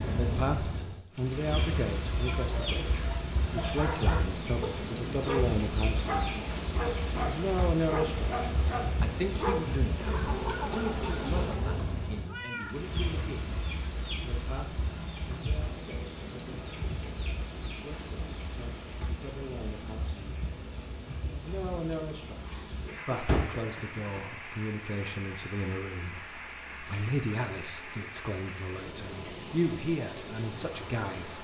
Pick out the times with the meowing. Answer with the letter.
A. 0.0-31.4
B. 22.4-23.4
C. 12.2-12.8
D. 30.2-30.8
C.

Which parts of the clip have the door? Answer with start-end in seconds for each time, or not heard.
22.4-23.4.